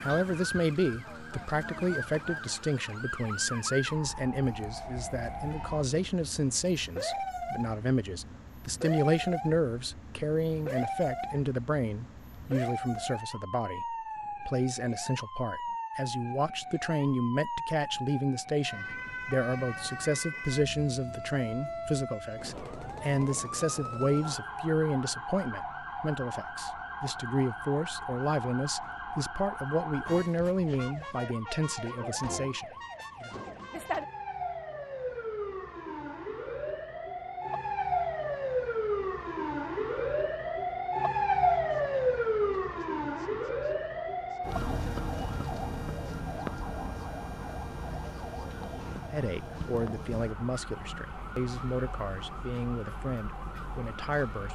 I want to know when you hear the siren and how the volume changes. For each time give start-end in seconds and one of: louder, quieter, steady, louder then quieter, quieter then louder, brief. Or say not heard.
0.0-54.5 louder then quieter.